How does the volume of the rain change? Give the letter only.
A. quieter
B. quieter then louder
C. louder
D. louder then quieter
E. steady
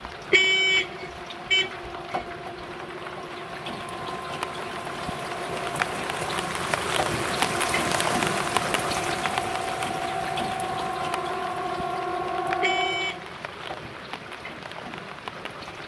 D.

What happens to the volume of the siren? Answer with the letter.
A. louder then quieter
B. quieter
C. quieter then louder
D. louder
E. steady
D.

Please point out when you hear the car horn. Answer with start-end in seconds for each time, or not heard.
0.3-2.2, 12.6-13.3.